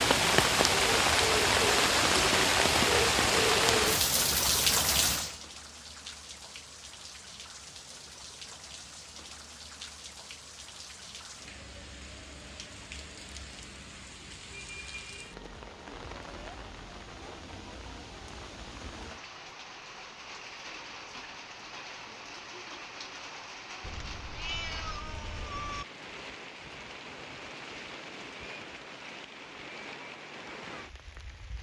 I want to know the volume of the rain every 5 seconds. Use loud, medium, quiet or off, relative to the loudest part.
loud, quiet, quiet, quiet, quiet, quiet, quiet.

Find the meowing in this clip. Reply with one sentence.
The meowing can be heard from 23.8 to 25.9 s.